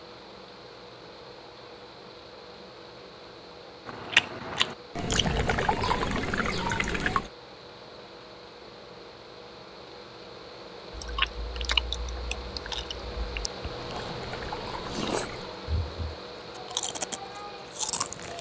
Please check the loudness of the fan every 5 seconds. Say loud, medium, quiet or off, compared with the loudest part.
medium, medium, loud, loud.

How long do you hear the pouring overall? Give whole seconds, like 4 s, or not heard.
4 s.